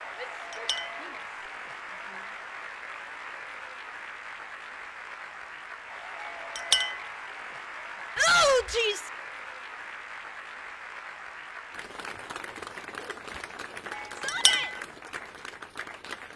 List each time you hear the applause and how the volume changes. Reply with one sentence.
You can hear the applause from 0.0 to 16.3 s, at a steady volume.